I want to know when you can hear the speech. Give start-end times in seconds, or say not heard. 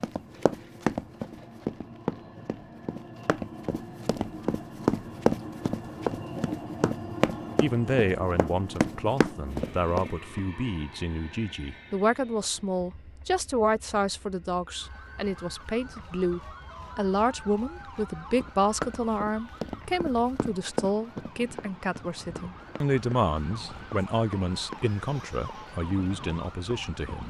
7.6-27.2.